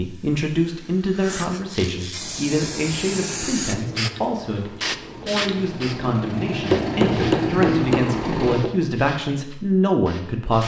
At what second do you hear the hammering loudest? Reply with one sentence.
The volume of the hammering peaks at 7 seconds.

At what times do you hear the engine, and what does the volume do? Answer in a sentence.
The engine can be heard from 2.1 to 8.6 s, getting louder.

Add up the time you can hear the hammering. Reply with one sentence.
You can hear the hammering for 2 seconds altogether.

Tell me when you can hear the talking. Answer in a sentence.
You can hear the talking from 0.0 to 10.6 s.